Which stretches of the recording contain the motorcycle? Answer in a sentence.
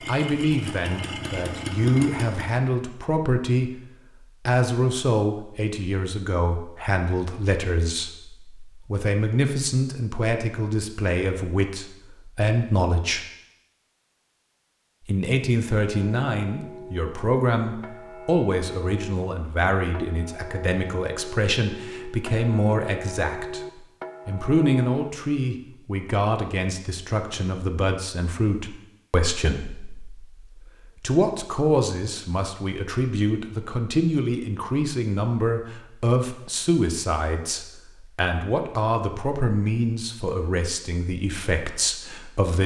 The motorcycle can be heard from 0.0 to 2.6 s.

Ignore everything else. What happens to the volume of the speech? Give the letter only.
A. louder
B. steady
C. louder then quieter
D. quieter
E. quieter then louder
B.